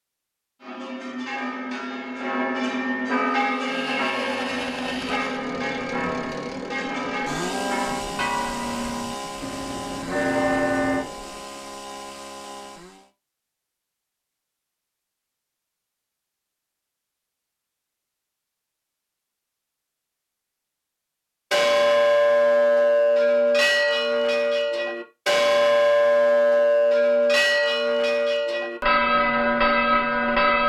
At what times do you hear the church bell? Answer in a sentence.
The church bell can be heard from 0.6 to 11.1 s and from 21.5 to 30.6 s.